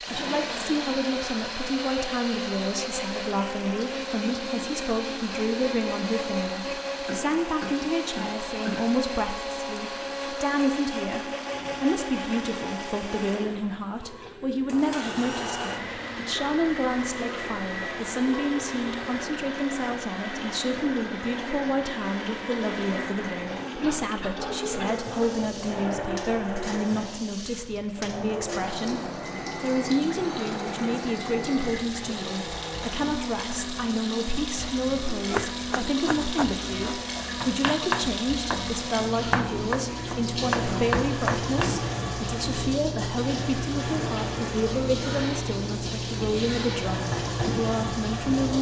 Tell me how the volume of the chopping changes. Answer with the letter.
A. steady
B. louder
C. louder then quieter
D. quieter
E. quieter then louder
B.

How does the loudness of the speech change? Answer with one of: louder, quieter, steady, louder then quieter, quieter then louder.
steady.